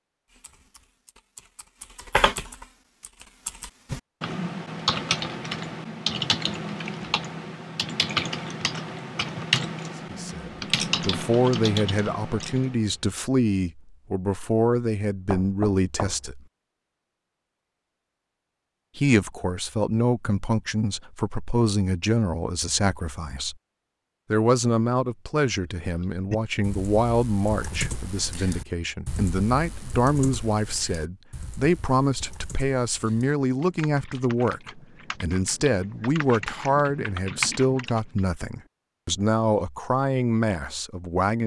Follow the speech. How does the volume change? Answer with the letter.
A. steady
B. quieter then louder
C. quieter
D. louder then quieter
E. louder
A.